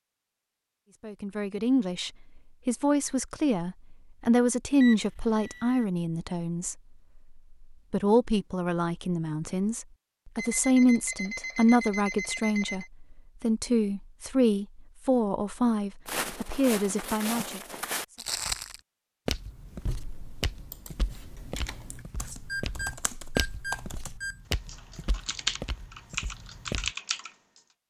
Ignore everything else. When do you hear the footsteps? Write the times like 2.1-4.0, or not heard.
16.1-26.9.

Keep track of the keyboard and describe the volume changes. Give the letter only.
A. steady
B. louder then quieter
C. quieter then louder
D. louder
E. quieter
D.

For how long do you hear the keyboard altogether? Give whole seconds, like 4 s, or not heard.
8 s.